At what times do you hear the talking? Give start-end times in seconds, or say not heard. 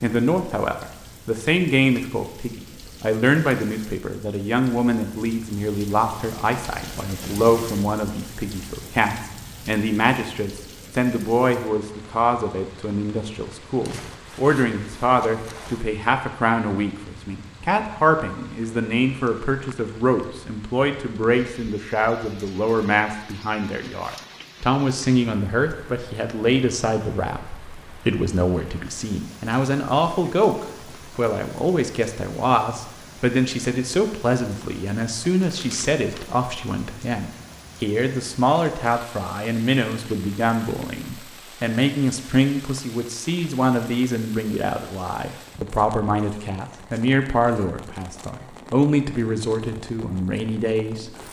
0.0-51.1.